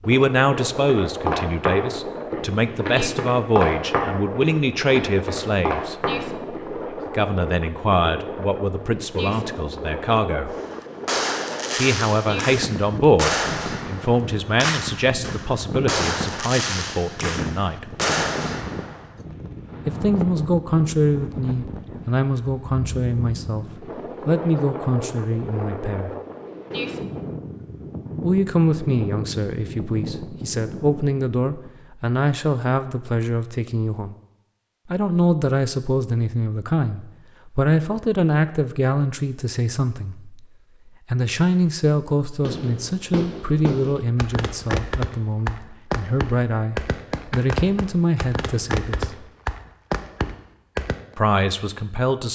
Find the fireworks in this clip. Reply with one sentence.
You can hear the fireworks from 10.6 to 19.1 s and from 42.4 to 51.0 s.